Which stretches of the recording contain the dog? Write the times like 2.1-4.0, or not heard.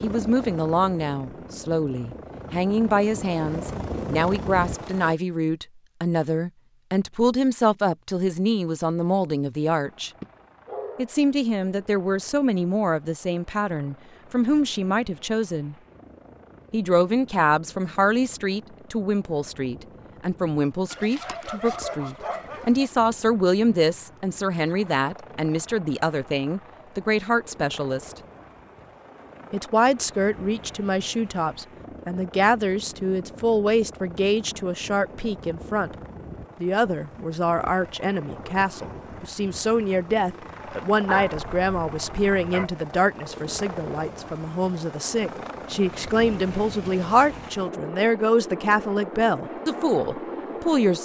10.2-11.2, 20.9-22.9, 41.0-42.6.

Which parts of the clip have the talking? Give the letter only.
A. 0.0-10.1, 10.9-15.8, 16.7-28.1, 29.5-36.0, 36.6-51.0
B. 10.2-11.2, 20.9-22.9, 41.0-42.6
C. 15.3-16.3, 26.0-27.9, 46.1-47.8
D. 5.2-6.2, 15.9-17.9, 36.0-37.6
A.